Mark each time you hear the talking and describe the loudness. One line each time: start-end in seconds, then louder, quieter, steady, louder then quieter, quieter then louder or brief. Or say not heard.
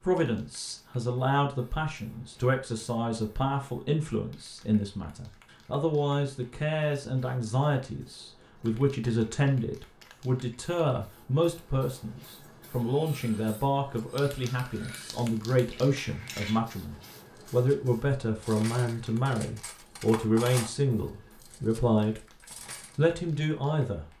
0.0-22.2 steady
22.9-24.1 brief.